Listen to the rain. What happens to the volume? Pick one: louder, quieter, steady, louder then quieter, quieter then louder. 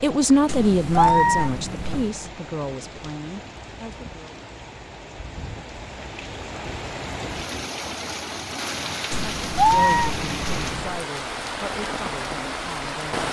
louder.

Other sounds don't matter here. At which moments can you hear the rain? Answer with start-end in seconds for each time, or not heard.
0.0-13.2.